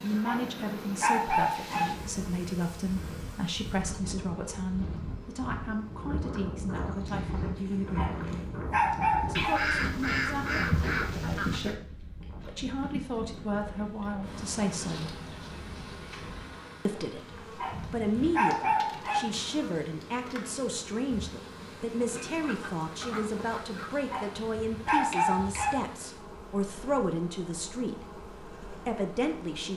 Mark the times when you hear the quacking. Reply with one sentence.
You can hear the quacking from 9.3 to 11.8 s and from 22.0 to 24.0 s.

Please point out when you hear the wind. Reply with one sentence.
The wind can be heard from 0.0 to 16.6 s.